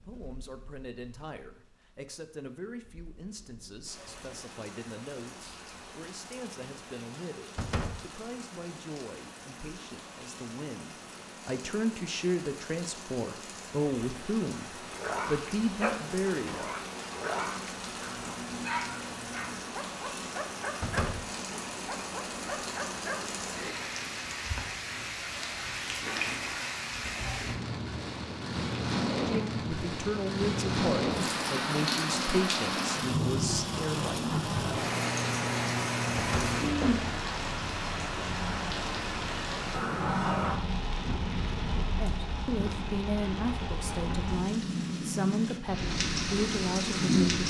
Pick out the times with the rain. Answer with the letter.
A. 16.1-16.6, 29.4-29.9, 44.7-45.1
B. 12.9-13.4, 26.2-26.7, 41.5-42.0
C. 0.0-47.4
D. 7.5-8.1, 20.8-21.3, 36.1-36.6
C.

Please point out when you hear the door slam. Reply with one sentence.
You can hear the door slam from 7.5 to 8.1 s, from 20.8 to 21.3 s and from 36.1 to 36.6 s.